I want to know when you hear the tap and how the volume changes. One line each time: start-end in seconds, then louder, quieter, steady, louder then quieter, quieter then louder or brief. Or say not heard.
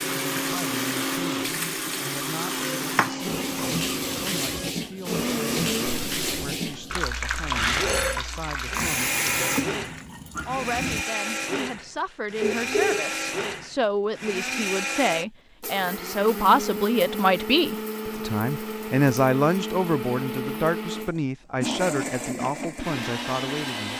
0.0-11.1 steady.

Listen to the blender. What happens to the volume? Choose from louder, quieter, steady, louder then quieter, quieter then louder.
steady.